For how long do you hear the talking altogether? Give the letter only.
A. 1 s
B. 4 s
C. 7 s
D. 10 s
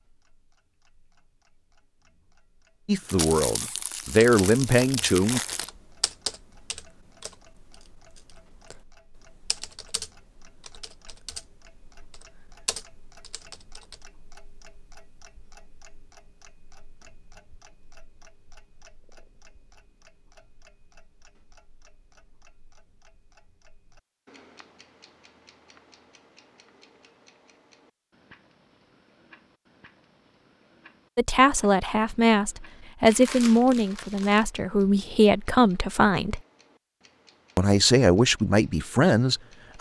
D.